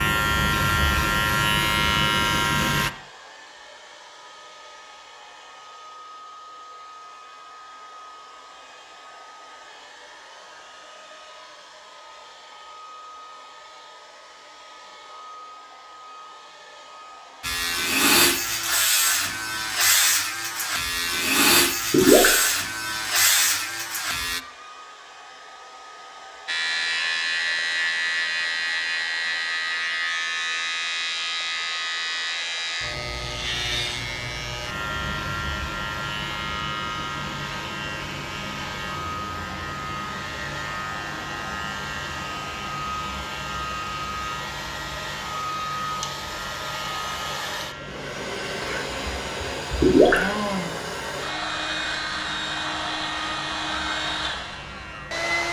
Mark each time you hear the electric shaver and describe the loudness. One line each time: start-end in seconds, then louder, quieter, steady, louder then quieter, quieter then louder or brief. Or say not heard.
0.0-2.9 brief
17.4-24.4 steady
26.4-55.4 quieter.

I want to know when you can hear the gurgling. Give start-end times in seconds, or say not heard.
21.9-22.3, 49.8-50.2.